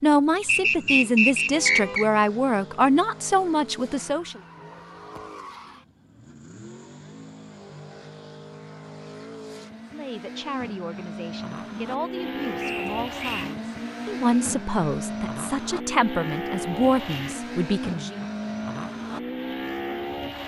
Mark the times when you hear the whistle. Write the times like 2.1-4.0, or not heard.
0.5-2.0, 12.6-13.5.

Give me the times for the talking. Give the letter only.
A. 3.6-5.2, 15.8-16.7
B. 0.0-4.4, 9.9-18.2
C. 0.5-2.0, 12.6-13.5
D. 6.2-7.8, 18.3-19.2
B.